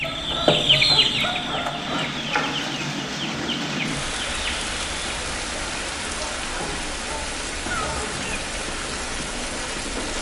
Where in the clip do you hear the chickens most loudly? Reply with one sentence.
The loudest moment of the chickens is at 1 second.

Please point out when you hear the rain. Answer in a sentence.
The rain can be heard from 0.0 to 10.1 s.